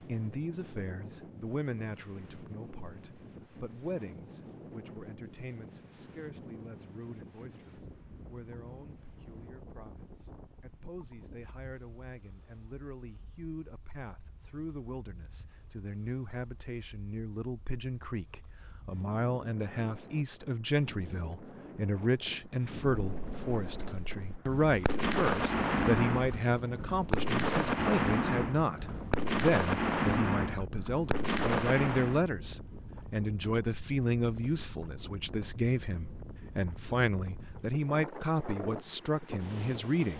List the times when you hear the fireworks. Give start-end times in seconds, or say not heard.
22.9-32.2.